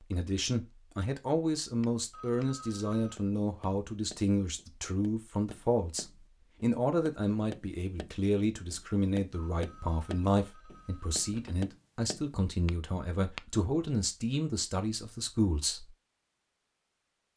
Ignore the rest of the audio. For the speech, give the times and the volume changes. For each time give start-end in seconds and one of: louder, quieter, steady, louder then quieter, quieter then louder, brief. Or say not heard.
0.0-15.9 steady.